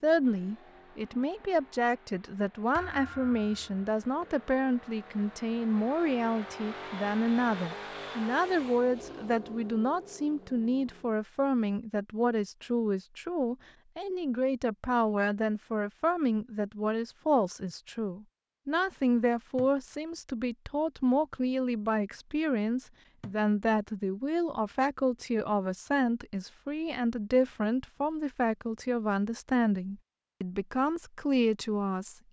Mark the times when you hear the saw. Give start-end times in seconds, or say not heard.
not heard.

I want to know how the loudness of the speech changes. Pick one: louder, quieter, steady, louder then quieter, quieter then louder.
steady.